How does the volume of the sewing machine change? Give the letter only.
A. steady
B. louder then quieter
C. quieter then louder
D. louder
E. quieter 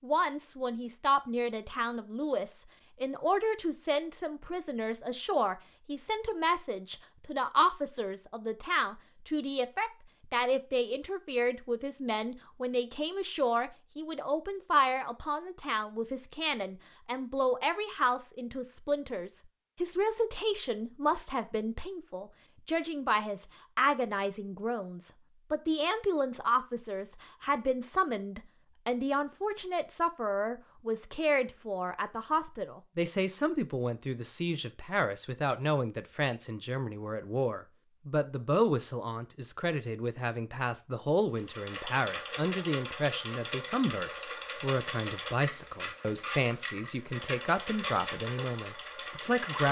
A.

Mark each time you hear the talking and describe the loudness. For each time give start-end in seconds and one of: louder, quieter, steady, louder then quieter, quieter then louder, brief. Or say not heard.
0.0-49.6 steady.